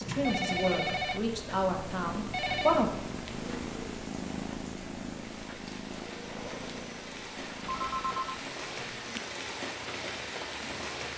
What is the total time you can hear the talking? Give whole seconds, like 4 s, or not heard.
3 s.